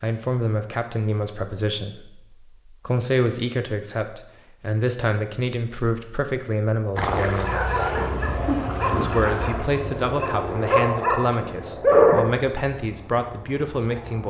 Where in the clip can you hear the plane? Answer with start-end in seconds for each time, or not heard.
7.0-14.2.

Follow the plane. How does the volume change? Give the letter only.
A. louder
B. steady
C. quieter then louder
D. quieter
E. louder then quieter
D.